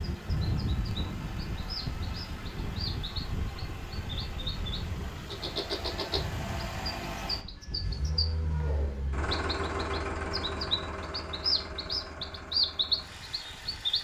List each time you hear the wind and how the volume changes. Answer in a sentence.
You can hear the wind from 0.0 to 13.9 s, getting quieter.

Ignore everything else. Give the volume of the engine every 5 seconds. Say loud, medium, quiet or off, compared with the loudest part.
medium, loud, loud.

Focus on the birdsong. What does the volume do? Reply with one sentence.
The loudness of the birdsong goes up.